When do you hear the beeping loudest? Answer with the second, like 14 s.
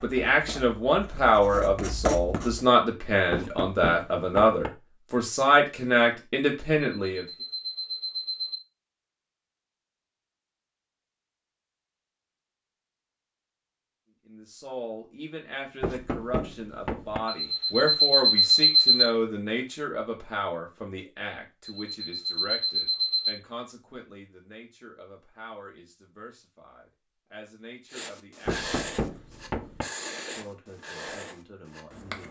19 s.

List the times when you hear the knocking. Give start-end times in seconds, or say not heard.
3.3-4.7, 15.8-17.2, 28.4-29.9.